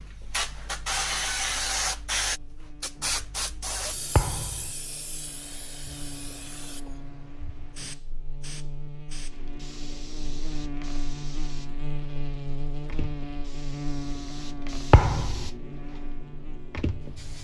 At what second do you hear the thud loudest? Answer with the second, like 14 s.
15 s.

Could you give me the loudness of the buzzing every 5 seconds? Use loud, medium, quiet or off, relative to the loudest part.
quiet, medium, loud, medium.